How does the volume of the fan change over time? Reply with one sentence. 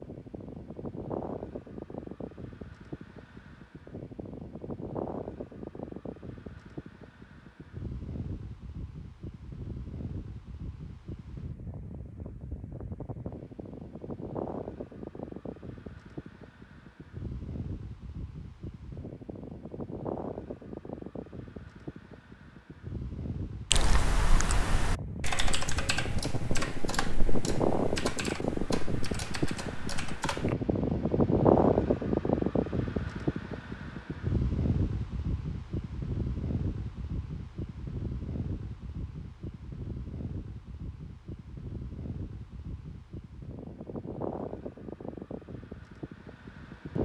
The volume of the fan goes up, then down.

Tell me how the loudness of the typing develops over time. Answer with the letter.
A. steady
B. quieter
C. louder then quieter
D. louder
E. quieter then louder
B.